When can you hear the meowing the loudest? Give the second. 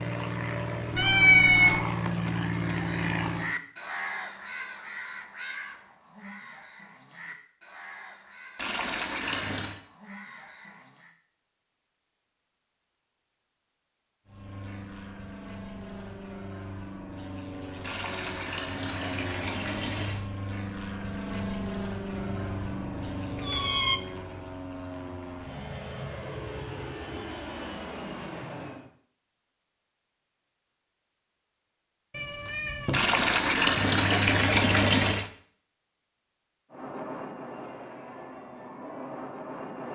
1 s.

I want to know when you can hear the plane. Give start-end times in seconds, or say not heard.
0.0-3.5, 14.2-28.9, 36.7-39.9.